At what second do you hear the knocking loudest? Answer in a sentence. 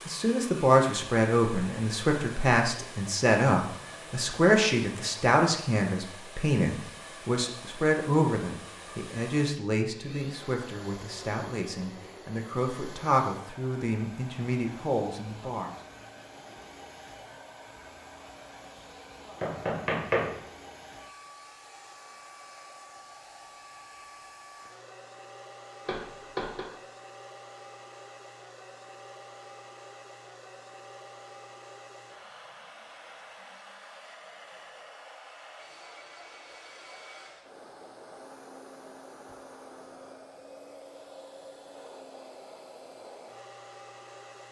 The volume of the knocking peaks at 20 seconds.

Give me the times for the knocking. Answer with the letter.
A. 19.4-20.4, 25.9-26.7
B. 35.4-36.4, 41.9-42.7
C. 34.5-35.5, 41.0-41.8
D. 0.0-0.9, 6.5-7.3
A.